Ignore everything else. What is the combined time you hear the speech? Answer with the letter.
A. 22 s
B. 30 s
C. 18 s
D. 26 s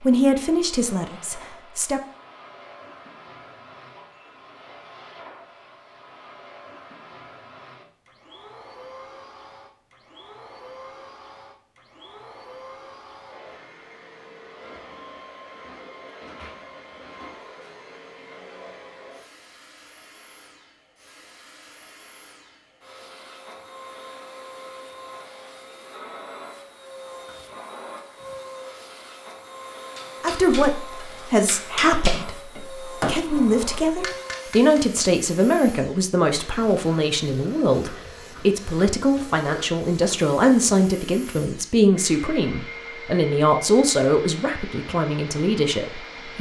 C.